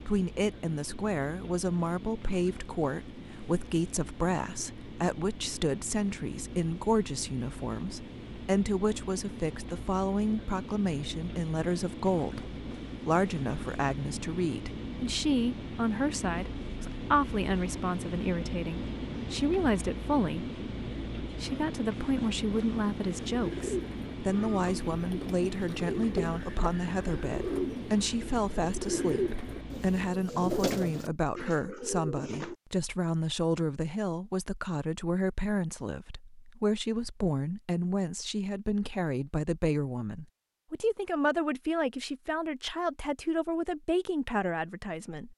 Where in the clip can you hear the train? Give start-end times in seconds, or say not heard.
0.0-30.1.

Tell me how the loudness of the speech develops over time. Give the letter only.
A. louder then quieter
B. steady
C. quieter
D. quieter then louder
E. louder
B.